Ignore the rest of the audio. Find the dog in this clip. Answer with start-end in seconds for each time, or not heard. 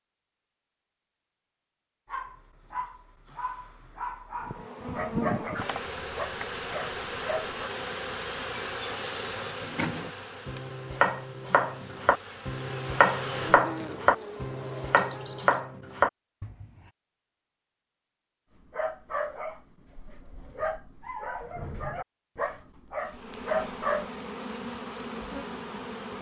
2.0-7.6, 18.6-24.1.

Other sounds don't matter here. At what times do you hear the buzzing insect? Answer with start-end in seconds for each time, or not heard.
4.3-15.6, 23.0-26.1.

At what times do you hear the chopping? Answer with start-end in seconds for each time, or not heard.
9.6-16.6.